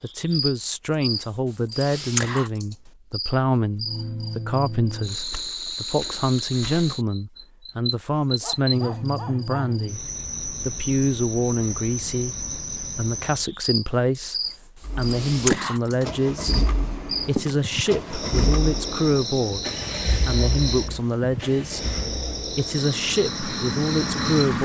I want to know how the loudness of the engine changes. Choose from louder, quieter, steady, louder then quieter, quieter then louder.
quieter then louder.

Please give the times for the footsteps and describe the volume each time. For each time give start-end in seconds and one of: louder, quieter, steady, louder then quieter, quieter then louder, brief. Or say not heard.
not heard.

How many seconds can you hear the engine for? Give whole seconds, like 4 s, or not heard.
10 s.